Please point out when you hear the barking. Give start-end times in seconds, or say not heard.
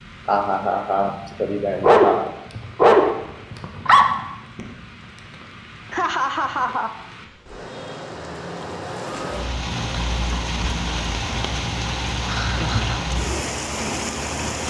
1.8-4.0.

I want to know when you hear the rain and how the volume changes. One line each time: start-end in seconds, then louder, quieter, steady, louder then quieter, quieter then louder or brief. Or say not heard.
0.0-14.6 louder.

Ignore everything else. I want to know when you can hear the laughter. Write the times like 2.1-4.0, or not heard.
0.2-2.3, 5.9-6.9, 12.2-13.0.